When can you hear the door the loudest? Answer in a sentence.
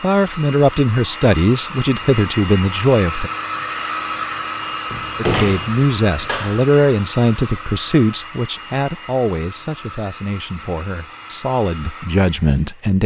The volume of the door peaks at 5 seconds.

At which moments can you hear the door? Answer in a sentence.
The door can be heard from 4.9 to 6.7 s.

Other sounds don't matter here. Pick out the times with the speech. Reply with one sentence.
You can hear the speech from 0.0 to 3.3 s and from 5.2 to 13.0 s.